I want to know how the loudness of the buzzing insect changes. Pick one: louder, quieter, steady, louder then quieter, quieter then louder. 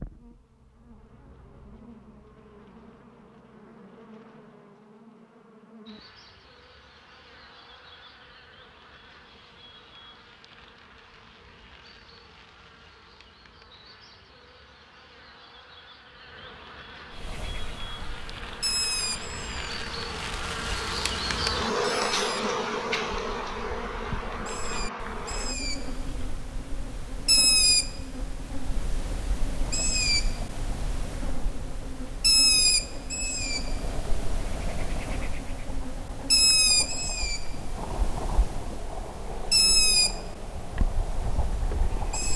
louder then quieter.